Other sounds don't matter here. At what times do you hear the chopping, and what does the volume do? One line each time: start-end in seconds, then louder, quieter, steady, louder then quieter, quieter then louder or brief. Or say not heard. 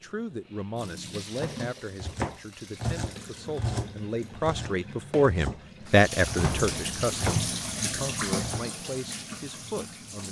1.4-7.5 quieter
8.3-8.8 brief.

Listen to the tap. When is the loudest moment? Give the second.
8 s.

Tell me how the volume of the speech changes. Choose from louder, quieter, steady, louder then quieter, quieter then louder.
louder then quieter.